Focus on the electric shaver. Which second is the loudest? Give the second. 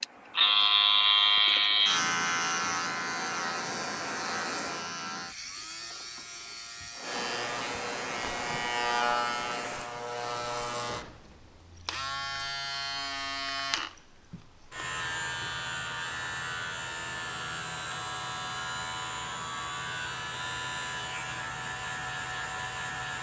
1 s.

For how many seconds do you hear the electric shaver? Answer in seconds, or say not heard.
23 s.